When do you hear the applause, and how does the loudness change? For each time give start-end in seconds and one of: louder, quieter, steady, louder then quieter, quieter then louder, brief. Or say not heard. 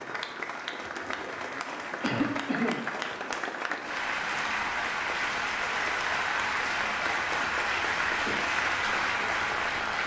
0.0-10.0 louder.